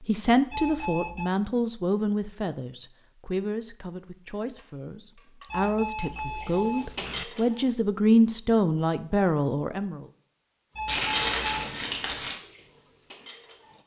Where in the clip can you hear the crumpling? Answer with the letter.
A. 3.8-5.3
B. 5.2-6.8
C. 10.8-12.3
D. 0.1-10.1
C.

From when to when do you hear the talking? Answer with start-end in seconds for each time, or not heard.
0.1-10.1.